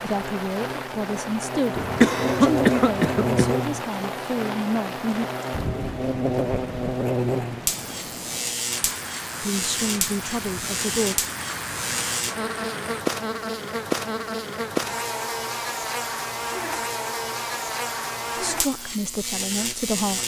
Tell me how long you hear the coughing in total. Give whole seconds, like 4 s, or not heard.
2 s.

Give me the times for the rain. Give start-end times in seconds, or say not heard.
0.0-13.1.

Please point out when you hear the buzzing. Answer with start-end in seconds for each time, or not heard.
0.0-20.2.